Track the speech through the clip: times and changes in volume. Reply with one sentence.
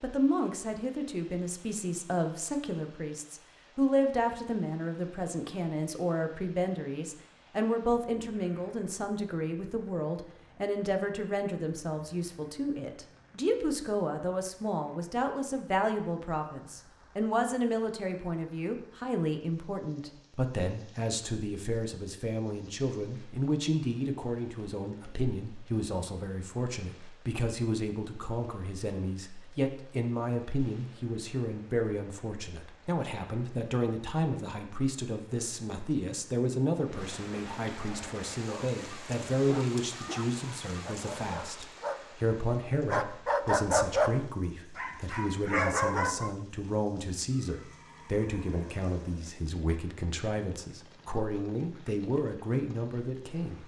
The speech can be heard from 0.0 to 53.6 s, at a steady volume.